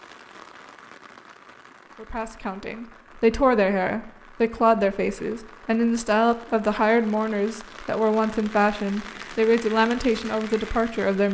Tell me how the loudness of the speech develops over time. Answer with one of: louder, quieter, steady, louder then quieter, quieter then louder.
steady.